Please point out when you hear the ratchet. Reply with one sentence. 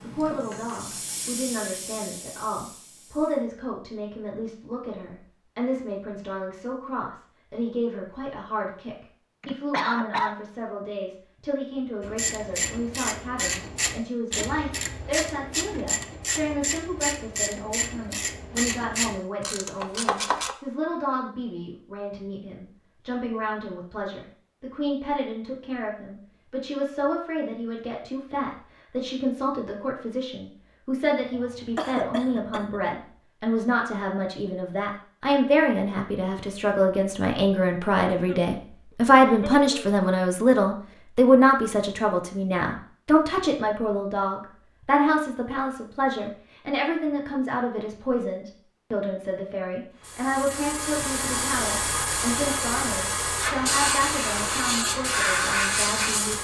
You can hear the ratchet from 12.0 to 20.6 s.